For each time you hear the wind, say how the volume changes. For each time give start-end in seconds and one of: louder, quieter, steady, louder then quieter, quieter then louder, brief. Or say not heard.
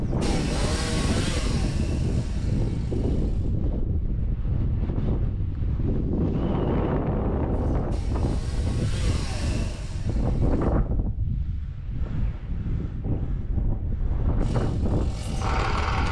0.0-16.0 steady.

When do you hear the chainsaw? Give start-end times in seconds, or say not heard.
0.0-3.5, 7.5-10.8, 14.4-16.0.